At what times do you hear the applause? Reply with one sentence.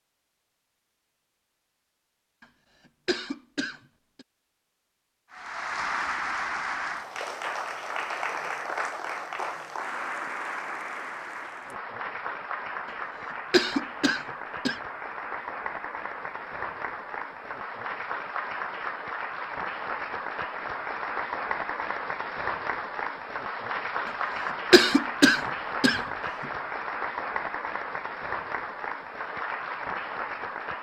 You can hear the applause from 5.3 to 30.7 s.